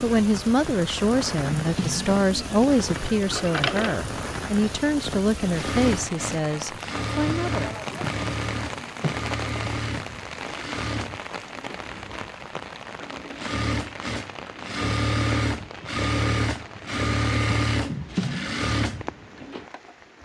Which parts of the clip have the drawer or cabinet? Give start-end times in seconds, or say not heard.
1.4-2.6, 7.9-9.2, 17.8-18.7.